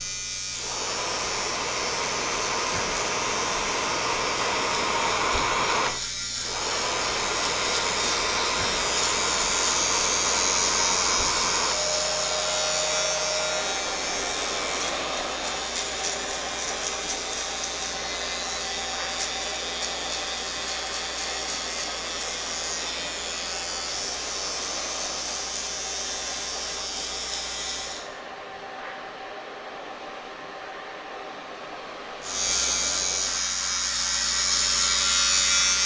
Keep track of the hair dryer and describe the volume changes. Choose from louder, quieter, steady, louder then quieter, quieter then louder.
quieter.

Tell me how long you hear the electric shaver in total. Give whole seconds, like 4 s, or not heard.
32 s.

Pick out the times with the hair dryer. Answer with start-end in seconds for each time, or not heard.
0.0-35.8.